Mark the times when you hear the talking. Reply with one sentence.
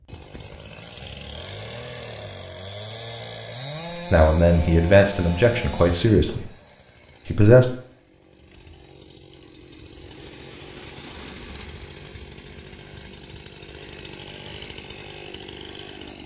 The talking can be heard from 4.1 to 6.5 s and from 7.2 to 7.7 s.